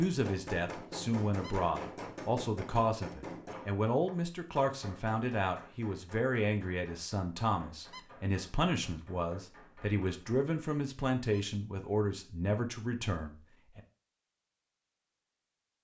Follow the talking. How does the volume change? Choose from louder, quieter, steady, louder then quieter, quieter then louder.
steady.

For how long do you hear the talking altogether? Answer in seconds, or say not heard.
14 s.